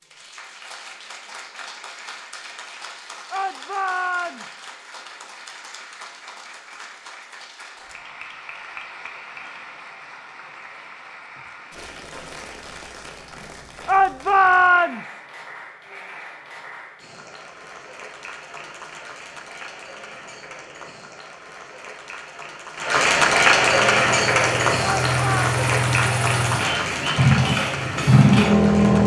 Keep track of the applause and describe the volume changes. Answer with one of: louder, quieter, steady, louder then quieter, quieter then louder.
louder.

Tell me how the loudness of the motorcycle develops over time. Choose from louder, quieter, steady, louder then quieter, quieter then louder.
louder.